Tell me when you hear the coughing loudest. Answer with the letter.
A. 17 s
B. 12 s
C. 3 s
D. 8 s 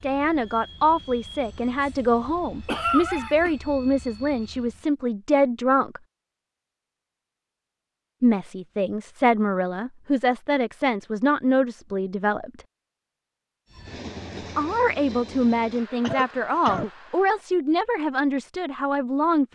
C.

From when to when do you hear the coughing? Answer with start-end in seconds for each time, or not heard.
2.6-3.5, 15.9-16.9.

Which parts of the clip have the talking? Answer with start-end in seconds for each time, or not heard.
0.0-6.0, 8.2-12.6, 14.3-19.5.